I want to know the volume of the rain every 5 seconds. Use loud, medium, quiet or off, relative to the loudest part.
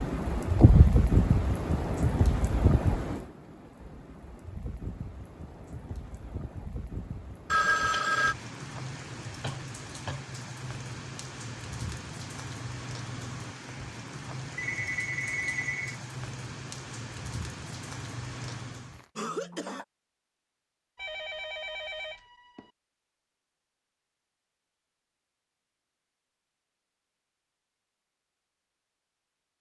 loud, quiet, medium, medium, off, off.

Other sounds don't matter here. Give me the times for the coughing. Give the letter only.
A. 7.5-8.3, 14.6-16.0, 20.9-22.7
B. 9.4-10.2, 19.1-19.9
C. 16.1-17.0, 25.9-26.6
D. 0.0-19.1
B.